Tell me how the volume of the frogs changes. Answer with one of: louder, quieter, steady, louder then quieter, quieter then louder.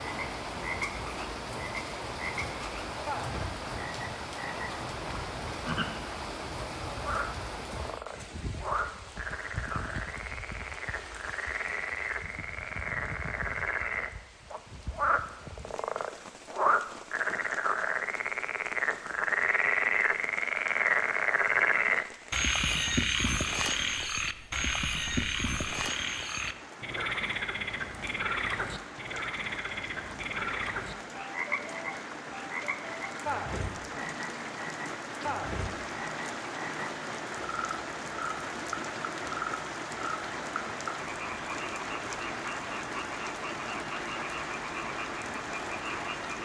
louder then quieter.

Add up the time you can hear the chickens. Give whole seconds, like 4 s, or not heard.
not heard.